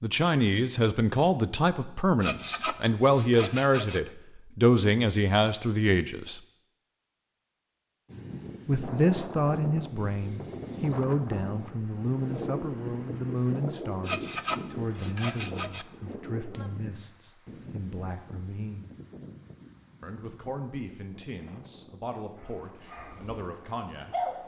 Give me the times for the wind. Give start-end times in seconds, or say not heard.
8.1-24.4.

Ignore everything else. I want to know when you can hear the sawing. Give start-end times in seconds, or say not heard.
2.2-4.0, 14.0-15.8.